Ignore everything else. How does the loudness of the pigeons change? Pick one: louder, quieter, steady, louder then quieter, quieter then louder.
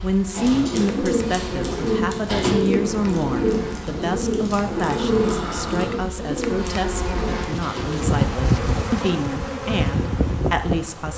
quieter.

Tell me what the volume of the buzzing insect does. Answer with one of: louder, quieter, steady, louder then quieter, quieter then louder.
louder.